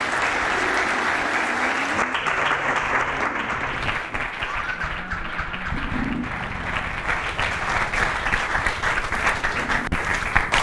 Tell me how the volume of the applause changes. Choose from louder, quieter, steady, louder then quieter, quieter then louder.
quieter then louder.